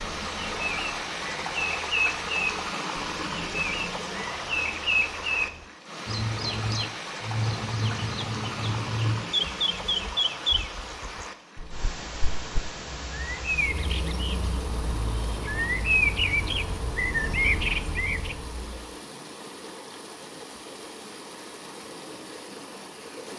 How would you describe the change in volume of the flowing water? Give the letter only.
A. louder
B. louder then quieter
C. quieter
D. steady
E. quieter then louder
C.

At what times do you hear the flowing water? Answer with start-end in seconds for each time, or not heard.
0.0-23.3.